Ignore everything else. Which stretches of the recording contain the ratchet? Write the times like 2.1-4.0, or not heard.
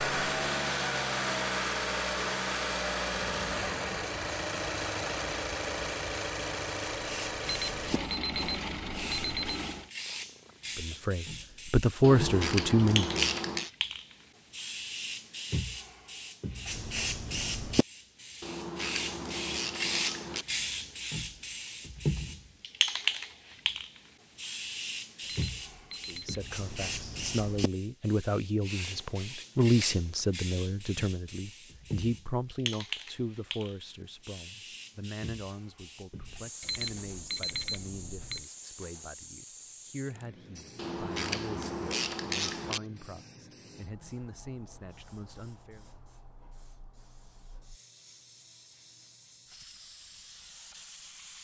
12.0-13.7, 18.4-20.4, 40.8-42.8.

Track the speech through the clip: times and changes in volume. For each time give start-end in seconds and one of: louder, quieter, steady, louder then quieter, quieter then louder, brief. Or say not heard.
10.8-13.3 brief
26.0-45.9 quieter.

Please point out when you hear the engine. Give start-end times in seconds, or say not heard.
0.0-9.9.